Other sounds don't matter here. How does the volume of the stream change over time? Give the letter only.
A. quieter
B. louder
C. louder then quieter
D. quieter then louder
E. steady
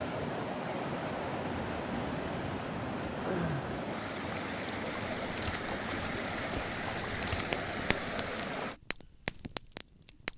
E.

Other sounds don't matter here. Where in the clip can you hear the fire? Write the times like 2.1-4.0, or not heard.
4.9-10.3.